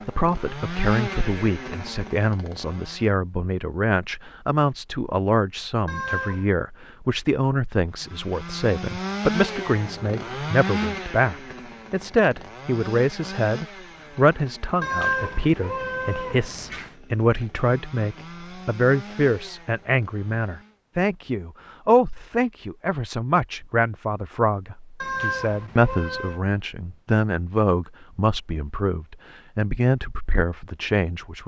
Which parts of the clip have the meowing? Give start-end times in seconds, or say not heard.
5.8-6.5, 14.8-16.9, 25.0-26.4.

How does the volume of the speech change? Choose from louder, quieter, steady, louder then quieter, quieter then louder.
steady.